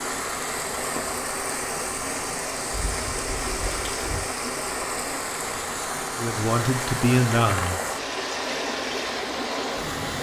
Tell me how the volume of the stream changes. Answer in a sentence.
The volume of the stream stays about the same.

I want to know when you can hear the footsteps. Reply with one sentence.
You can't hear the footsteps here.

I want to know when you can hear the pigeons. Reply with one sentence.
You can hear the pigeons from 2.7 to 4.3 s.